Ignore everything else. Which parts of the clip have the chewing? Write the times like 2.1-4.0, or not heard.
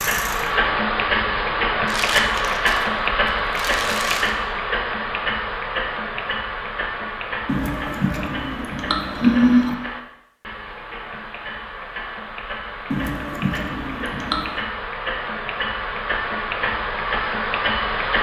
1.9-4.3, 7.5-9.8, 12.9-14.6.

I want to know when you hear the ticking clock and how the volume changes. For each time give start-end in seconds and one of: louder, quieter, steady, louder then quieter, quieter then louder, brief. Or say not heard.
0.0-18.1 quieter then louder.